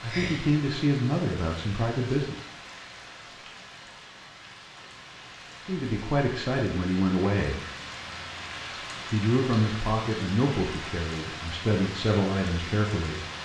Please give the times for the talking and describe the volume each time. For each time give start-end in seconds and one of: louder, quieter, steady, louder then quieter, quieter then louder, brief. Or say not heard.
0.0-2.4 brief
5.7-7.6 brief
9.1-13.2 quieter then louder.